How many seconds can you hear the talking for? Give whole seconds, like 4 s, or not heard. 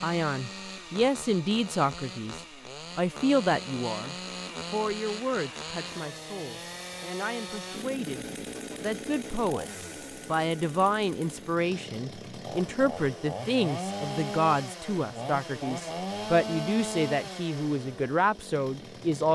19 s.